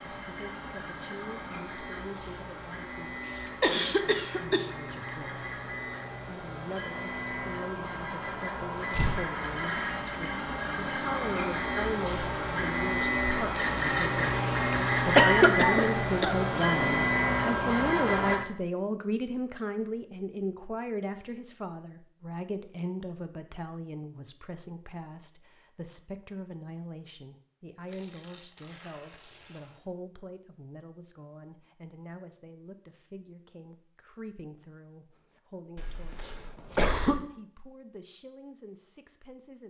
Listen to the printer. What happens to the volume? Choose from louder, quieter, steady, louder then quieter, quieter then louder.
louder.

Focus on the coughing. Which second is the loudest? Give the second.
15 s.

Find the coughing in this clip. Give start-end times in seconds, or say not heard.
3.2-4.7, 14.7-16.4, 35.8-37.2.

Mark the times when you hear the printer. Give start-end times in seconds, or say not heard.
0.0-18.4.